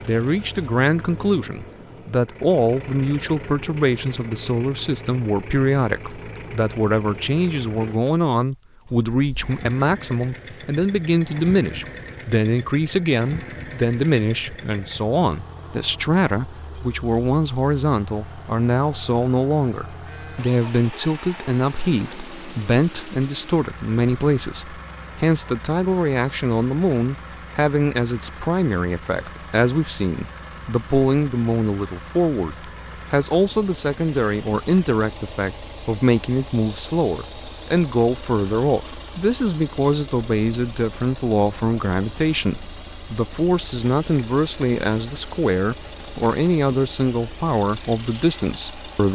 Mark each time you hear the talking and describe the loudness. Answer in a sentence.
The talking can be heard from 0.1 to 49.1 s, at a steady volume.